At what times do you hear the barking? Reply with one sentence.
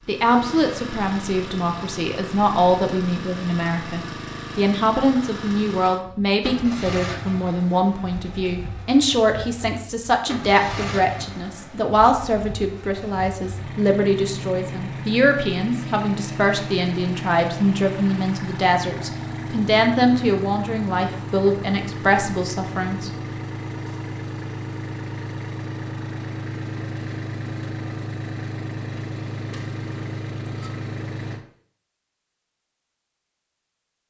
You can't hear the barking here.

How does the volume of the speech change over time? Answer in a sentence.
The loudness of the speech stays about the same.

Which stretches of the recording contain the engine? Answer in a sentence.
You can hear the engine from 0.0 to 31.4 s.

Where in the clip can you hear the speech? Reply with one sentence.
You can hear the speech from 0.1 to 23.1 s.